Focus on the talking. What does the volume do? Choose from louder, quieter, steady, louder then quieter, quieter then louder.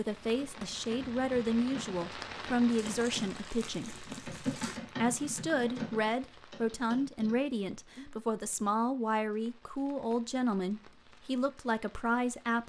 steady.